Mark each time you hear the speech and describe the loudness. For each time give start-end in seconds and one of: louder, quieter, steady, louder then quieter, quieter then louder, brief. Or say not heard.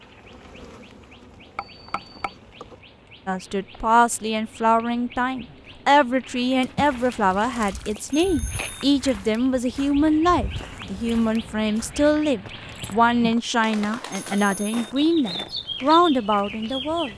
3.2-17.1 steady.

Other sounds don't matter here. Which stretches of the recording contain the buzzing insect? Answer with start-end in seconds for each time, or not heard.
0.0-2.9.